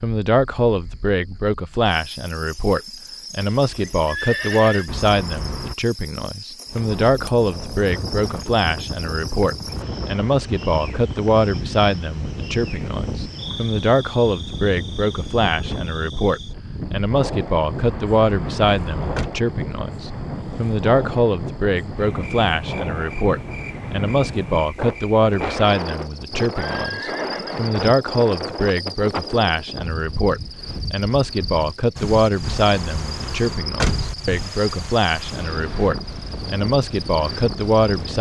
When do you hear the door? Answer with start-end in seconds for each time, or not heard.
4.8-5.8, 17.8-19.3, 32.4-34.1.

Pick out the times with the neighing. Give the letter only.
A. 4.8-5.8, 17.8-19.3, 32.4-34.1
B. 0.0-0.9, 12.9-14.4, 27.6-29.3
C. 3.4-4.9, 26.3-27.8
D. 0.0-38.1
C.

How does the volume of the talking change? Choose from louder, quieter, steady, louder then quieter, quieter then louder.
steady.